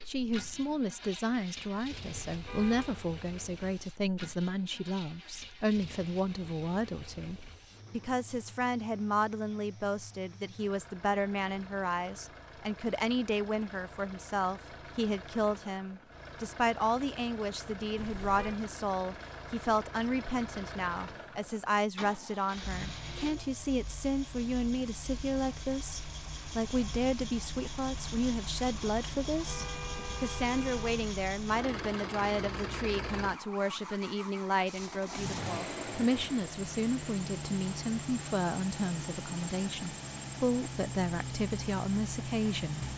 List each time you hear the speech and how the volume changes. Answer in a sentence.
You can hear the speech from 0.1 to 42.9 s, at a steady volume.